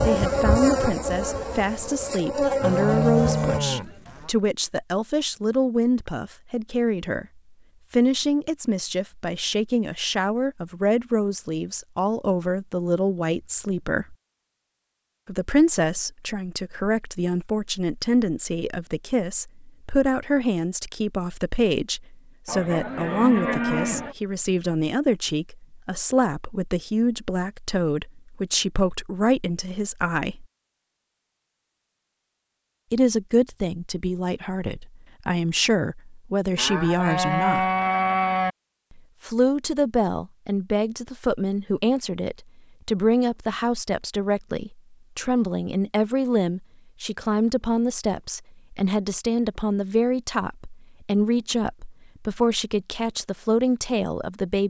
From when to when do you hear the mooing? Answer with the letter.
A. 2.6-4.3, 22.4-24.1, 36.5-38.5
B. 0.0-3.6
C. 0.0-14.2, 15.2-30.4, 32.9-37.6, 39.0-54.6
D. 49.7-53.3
A.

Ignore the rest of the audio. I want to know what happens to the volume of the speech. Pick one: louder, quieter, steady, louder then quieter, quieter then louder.
steady.